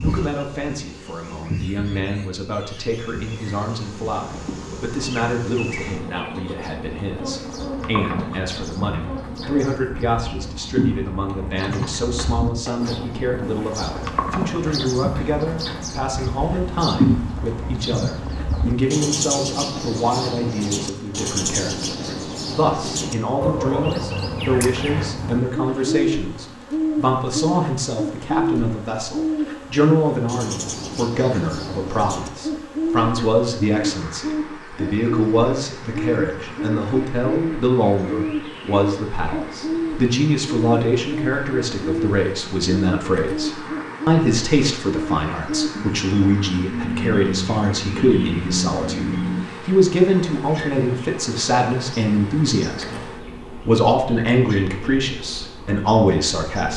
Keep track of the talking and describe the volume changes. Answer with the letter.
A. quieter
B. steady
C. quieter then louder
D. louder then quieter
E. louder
E.